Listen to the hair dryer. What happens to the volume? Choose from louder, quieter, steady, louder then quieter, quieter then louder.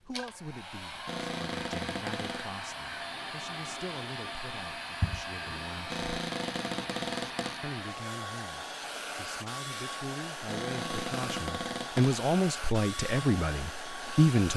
steady.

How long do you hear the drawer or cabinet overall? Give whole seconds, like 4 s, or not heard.
5 s.